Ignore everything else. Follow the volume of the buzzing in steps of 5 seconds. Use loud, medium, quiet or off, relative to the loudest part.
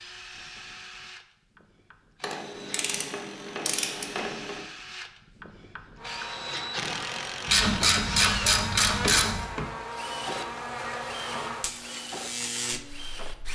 off, loud, loud.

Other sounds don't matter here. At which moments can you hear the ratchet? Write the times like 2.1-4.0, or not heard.
2.2-4.7, 7.5-9.4.